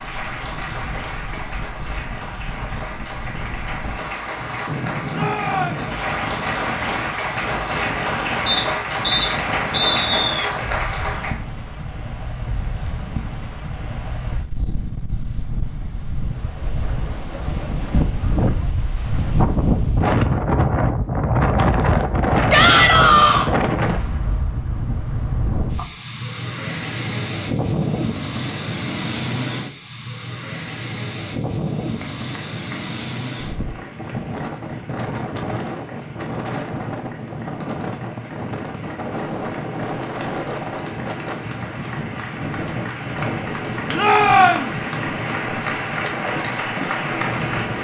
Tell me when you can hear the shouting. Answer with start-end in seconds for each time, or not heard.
5.1-5.9, 22.5-23.5, 44.0-44.7.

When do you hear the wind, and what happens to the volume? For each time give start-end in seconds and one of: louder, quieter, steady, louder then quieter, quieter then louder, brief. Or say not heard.
0.0-47.8 louder then quieter.